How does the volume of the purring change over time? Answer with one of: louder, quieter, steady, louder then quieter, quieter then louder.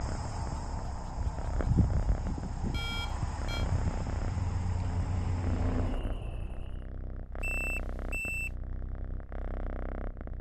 steady.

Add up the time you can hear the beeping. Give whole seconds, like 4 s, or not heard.
2 s.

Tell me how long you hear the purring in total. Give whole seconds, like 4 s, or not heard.
10 s.